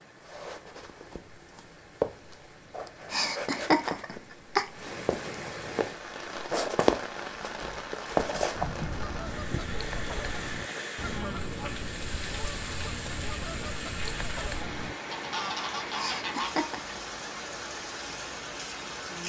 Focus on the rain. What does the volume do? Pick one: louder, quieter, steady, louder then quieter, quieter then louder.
louder.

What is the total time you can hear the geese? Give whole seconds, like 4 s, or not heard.
8 s.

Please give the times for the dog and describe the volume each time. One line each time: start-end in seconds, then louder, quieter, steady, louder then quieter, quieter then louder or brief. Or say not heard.
not heard.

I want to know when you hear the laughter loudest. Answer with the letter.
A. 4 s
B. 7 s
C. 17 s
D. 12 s
A.